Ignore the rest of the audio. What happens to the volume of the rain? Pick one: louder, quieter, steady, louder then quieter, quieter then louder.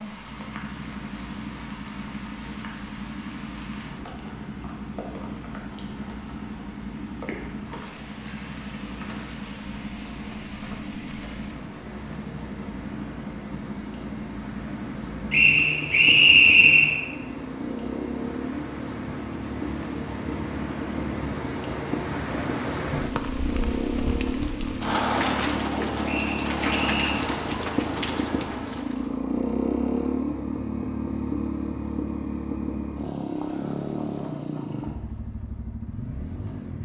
louder.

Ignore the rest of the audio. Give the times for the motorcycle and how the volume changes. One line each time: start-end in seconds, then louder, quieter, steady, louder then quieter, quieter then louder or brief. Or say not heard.
0.0-36.8 louder.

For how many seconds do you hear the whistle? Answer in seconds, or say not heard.
3 s.